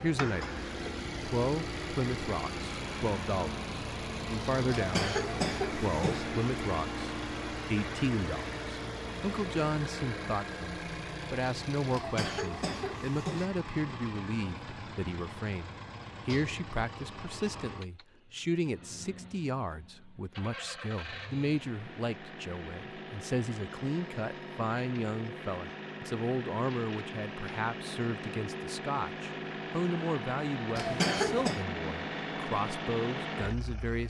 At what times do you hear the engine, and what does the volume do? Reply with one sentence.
You can hear the engine from 0.0 to 34.0 s, getting quieter then louder.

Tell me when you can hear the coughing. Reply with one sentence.
You can hear the coughing from 4.7 to 6.2 s, from 11.9 to 13.4 s and from 30.8 to 31.6 s.